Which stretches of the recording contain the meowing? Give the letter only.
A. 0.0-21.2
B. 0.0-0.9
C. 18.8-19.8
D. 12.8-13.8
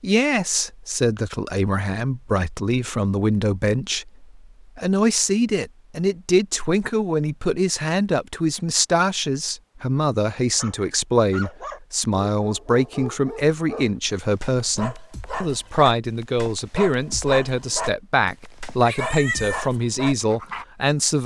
C.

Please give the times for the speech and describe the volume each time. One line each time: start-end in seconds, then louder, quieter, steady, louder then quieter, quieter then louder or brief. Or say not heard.
0.0-21.2 steady.